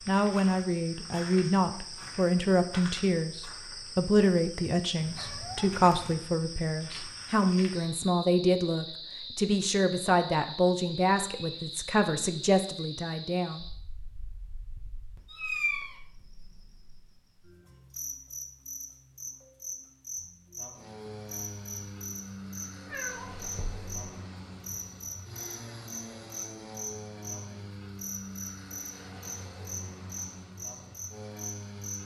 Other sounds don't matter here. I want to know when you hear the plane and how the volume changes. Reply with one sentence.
You can hear the plane from 20.7 to 32.0 s, at a steady volume.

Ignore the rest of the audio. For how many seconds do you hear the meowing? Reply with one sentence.
You can hear the meowing for 3 seconds altogether.